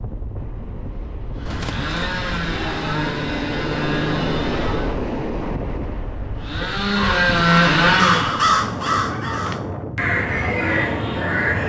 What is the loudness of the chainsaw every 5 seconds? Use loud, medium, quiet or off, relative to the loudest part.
medium, loud, off.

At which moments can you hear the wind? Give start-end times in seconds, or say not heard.
0.0-11.6.